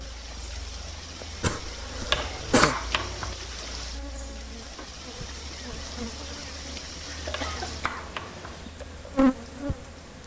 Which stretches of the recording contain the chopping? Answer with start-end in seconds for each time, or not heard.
2.1-3.4, 7.3-8.6.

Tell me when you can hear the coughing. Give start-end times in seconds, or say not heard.
1.4-2.8, 7.0-8.0.